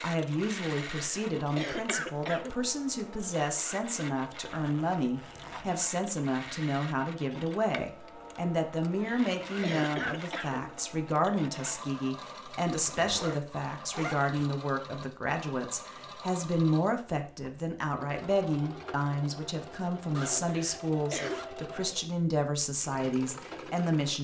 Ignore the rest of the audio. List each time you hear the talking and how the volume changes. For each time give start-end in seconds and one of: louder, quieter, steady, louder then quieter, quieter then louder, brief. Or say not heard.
0.0-24.1 steady.